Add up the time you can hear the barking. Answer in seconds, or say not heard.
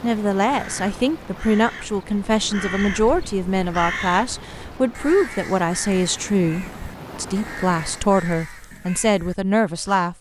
not heard.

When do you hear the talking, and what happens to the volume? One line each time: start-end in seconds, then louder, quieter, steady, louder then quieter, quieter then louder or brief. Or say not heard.
0.0-10.1 steady.